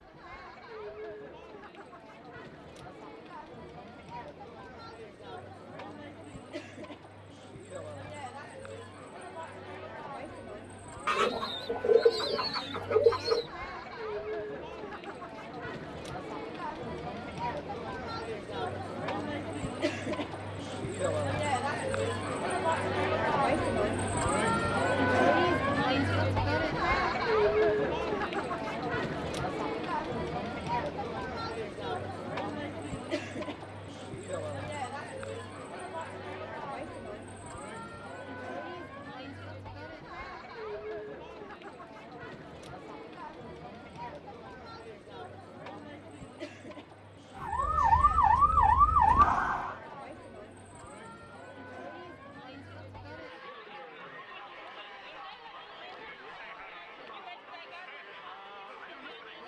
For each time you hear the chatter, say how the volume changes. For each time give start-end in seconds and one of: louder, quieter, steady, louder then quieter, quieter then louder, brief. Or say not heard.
0.0-59.4 louder then quieter.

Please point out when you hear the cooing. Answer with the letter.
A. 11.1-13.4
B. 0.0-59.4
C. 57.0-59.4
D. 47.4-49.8
A.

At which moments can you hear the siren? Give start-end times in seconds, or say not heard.
47.4-49.8.